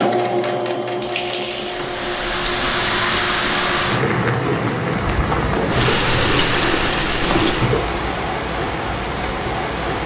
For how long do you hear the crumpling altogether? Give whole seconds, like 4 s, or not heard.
2 s.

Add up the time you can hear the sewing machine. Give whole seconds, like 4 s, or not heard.
8 s.